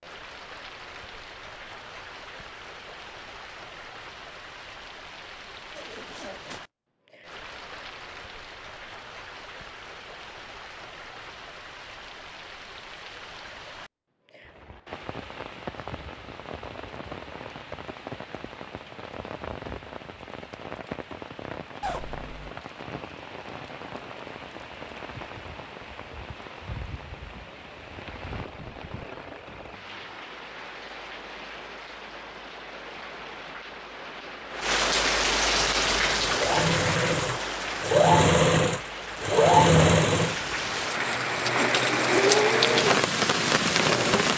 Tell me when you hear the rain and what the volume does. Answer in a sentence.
You can hear the rain from 0.0 to 44.3 s, getting louder.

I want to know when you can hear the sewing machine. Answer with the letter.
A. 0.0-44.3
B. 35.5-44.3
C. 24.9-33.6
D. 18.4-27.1
B.